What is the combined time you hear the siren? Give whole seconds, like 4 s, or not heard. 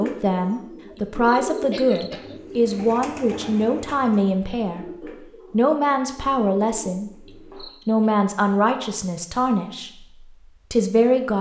not heard.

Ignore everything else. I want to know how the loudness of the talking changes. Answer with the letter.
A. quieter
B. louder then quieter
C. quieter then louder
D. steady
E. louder
D.